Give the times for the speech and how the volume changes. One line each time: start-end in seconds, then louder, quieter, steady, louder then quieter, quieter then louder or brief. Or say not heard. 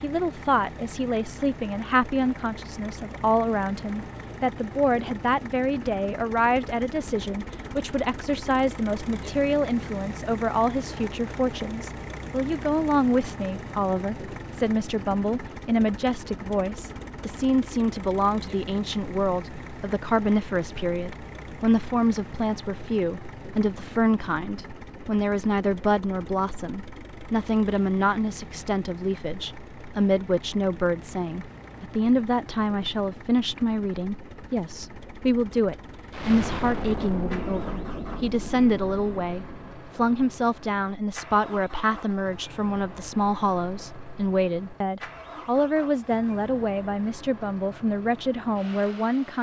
0.0-49.3 steady.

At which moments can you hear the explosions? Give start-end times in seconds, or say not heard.
36.1-39.8.